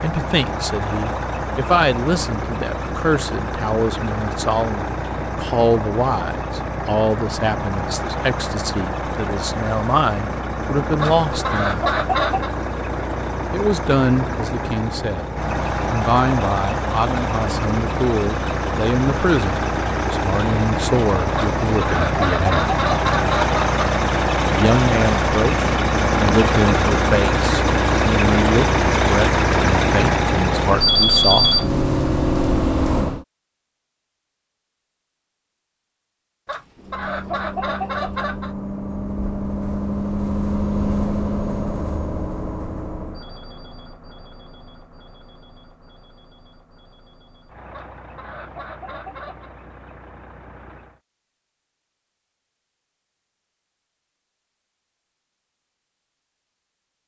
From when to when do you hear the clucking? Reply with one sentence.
The clucking can be heard from 11.0 to 12.6 s, from 21.4 to 23.8 s, from 36.5 to 38.5 s and from 47.7 to 49.5 s.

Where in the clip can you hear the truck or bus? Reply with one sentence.
The truck or bus can be heard from 0.0 to 33.2 s and from 36.8 to 51.0 s.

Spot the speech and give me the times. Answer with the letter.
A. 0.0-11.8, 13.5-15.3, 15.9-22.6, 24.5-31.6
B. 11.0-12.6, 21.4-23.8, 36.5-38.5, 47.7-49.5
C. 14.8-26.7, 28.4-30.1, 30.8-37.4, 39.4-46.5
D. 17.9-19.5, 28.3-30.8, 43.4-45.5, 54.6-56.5
A.